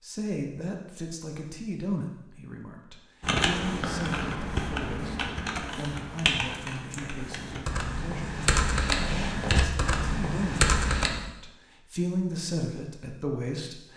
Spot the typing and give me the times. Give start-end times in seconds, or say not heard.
3.2-11.1.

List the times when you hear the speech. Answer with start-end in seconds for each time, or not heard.
0.0-13.9.